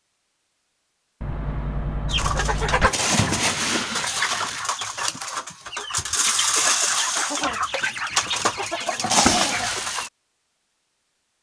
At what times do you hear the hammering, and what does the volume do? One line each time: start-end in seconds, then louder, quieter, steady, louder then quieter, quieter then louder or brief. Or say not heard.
not heard.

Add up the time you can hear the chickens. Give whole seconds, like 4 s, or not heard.
8 s.